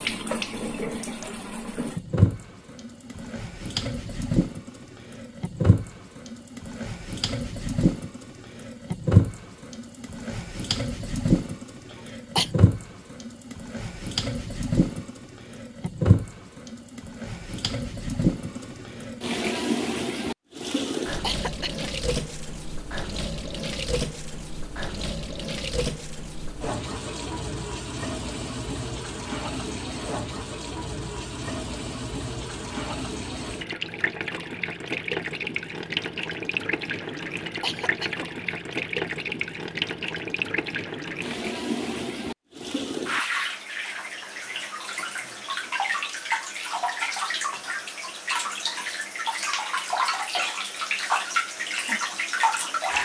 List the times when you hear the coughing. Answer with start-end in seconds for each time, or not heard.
11.9-12.5, 21.2-21.9, 37.4-38.5.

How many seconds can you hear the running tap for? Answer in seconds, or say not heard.
53 s.